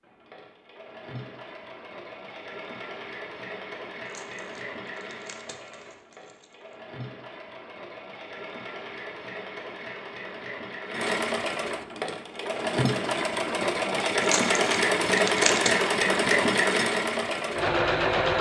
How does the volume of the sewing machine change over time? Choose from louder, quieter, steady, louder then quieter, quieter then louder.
louder.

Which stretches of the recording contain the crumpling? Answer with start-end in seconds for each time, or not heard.
4.0-6.5, 14.2-15.8.